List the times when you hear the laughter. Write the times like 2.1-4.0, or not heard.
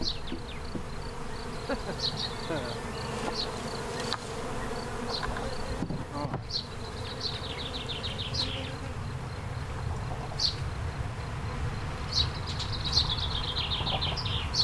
1.6-2.8.